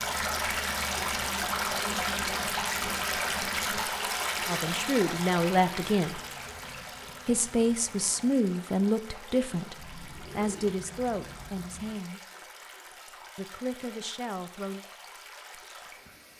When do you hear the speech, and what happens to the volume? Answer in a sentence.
The speech can be heard briefly from 4.5 to 6.2 s; from 7.2 to 12.2 s, getting quieter; and briefly from 13.3 to 14.8 s.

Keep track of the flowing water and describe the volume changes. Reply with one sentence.
The loudness of the flowing water goes down.